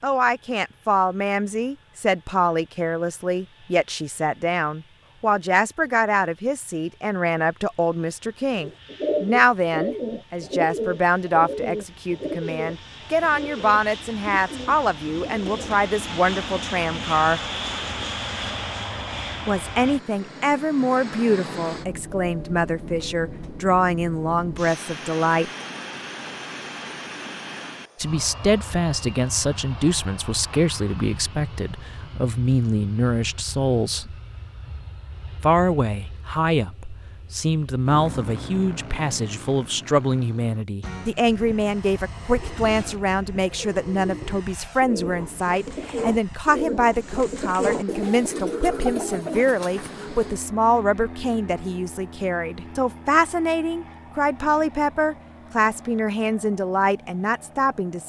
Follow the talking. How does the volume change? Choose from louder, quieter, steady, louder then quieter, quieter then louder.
steady.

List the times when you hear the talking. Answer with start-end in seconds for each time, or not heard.
0.0-17.4, 19.4-25.5, 27.9-34.1, 35.4-58.0.